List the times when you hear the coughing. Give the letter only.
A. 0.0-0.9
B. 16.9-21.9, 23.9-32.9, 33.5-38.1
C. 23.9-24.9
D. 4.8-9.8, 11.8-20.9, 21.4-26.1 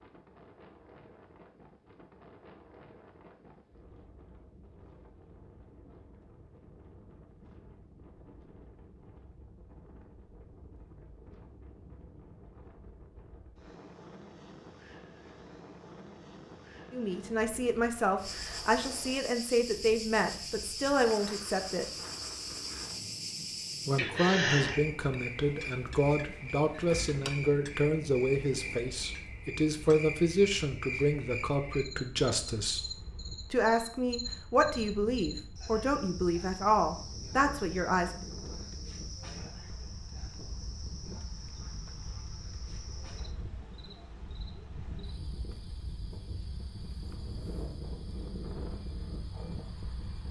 C.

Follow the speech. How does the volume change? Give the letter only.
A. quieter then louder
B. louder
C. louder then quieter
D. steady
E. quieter
D.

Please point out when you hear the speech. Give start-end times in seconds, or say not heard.
16.9-21.9, 23.9-32.9, 33.5-38.1.